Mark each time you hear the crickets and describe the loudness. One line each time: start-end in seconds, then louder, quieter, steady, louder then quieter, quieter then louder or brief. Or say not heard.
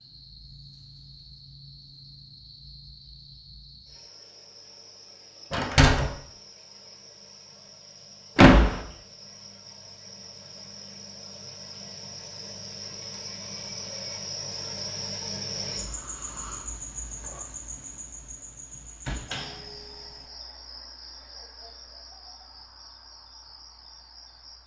0.0-24.6 louder then quieter.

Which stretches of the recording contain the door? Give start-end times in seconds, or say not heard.
5.5-6.1, 8.3-8.8, 18.8-19.6.